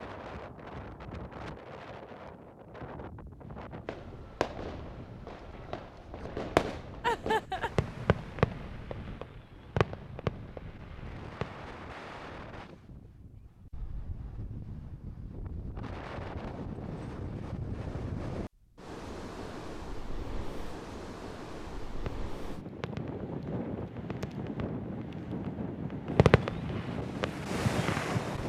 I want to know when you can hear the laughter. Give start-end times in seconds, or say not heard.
7.0-7.7.